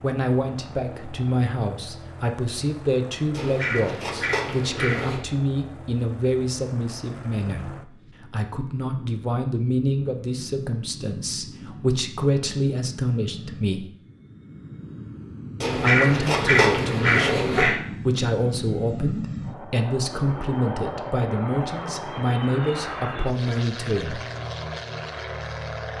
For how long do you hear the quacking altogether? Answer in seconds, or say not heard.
4 s.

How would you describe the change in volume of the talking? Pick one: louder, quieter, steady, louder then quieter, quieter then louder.
steady.